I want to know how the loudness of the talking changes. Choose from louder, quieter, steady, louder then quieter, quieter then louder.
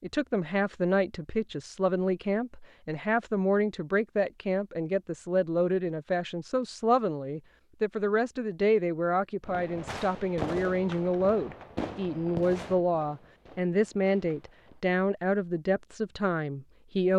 steady.